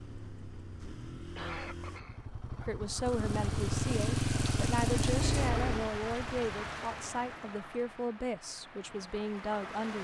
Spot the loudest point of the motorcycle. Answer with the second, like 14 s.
5 s.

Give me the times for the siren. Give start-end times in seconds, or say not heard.
not heard.